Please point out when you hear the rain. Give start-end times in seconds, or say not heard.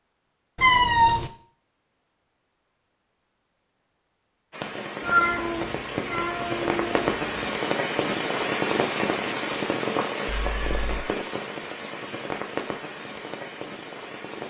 4.5-14.4.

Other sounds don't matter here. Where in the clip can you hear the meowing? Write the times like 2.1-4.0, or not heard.
0.6-1.3, 5.0-7.4, 10.2-10.8.